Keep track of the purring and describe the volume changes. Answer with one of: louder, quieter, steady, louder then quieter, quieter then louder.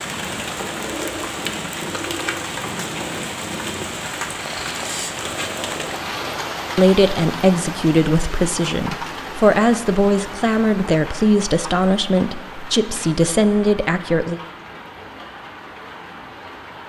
steady.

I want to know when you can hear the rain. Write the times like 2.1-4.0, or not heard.
0.0-16.8.